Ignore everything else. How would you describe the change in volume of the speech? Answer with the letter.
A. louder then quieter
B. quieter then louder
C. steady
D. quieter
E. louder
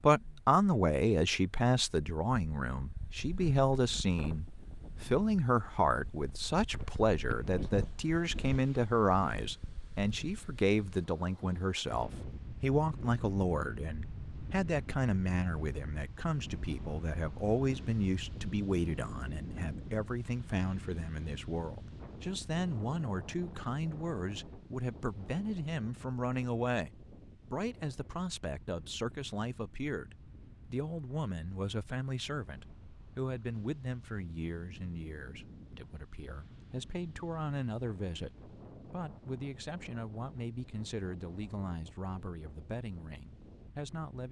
D.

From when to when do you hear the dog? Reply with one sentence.
The dog can't be heard in this clip.